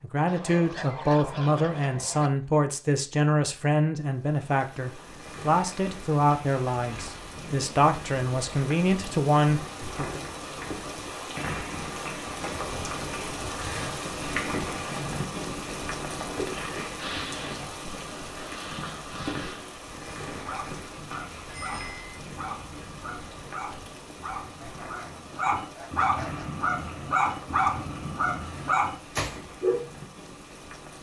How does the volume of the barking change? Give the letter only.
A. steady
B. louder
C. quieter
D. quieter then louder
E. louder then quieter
B.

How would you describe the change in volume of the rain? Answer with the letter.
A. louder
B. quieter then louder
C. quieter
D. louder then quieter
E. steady
D.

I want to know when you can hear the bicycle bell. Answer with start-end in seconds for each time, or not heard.
21.5-22.1.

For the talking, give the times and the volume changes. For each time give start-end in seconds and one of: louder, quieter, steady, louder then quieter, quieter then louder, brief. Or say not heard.
0.0-10.2 steady.